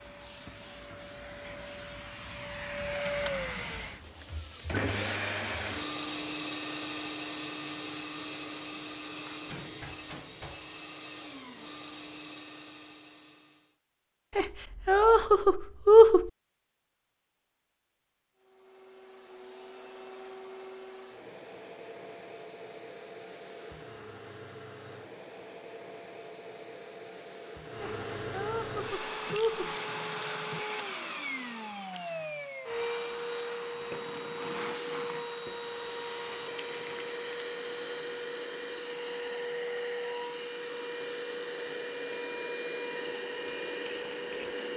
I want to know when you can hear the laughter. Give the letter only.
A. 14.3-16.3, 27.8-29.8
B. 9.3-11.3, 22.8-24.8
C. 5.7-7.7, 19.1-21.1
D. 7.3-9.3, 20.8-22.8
A.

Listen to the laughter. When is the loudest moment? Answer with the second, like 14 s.
16 s.